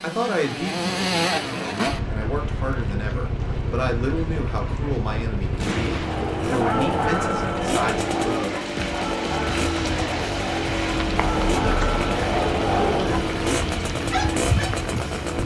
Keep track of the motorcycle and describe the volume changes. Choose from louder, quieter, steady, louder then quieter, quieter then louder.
steady.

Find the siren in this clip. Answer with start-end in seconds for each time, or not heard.
not heard.